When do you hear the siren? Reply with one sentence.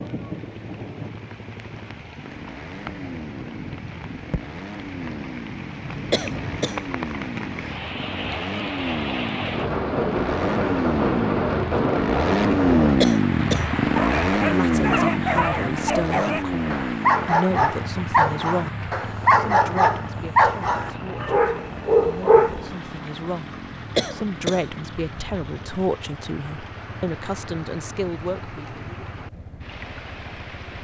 You can't hear the siren here.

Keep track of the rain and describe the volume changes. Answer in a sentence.
The loudness of the rain goes up, then down.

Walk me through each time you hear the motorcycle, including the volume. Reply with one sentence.
You can hear the motorcycle from 0.0 to 30.7 s, getting louder then quieter.